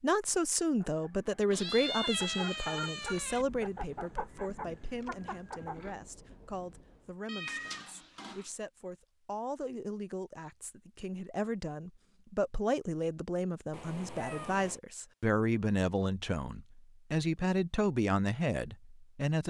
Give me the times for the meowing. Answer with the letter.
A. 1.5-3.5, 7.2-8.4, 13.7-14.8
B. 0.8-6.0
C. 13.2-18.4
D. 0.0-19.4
A.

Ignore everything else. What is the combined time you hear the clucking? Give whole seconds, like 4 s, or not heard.
5 s.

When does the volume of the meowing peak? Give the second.
2 s.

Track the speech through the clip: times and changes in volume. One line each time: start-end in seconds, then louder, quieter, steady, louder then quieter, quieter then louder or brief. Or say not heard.
0.0-19.4 quieter then louder.